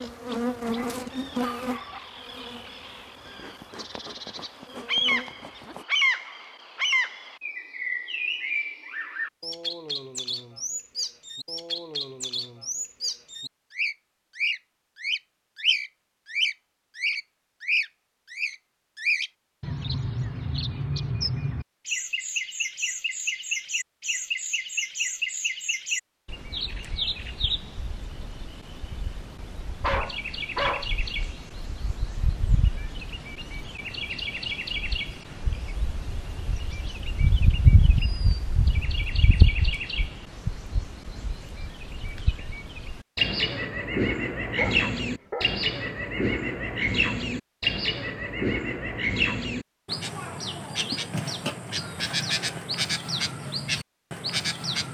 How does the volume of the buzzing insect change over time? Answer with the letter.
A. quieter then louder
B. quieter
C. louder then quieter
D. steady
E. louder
A.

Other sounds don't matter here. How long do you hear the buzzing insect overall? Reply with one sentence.
You can hear the buzzing insect for 6 seconds altogether.